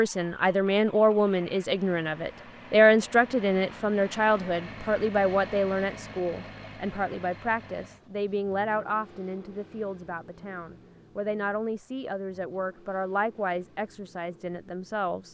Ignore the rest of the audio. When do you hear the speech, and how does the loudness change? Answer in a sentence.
The speech can be heard from 0.0 to 15.2 s, getting quieter.